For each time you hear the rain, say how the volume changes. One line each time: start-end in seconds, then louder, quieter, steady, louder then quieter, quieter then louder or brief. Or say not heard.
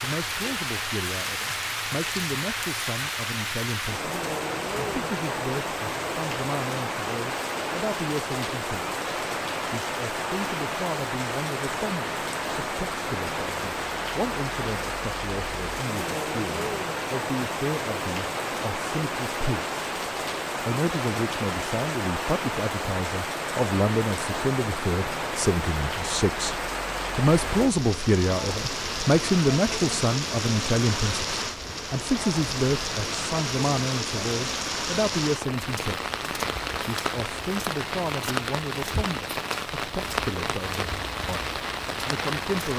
0.0-42.7 steady.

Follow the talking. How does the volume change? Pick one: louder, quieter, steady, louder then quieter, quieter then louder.
louder then quieter.